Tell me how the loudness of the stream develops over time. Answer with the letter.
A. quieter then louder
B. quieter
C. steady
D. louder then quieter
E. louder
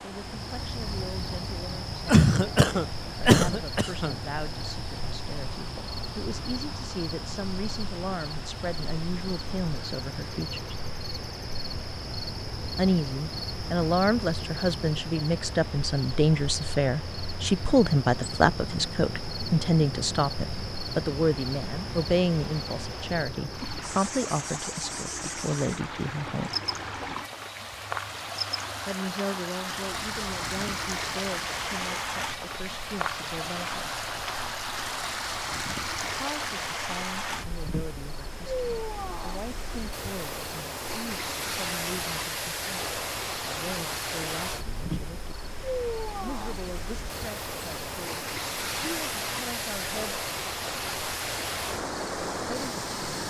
E.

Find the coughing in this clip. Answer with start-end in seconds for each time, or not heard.
2.0-4.2.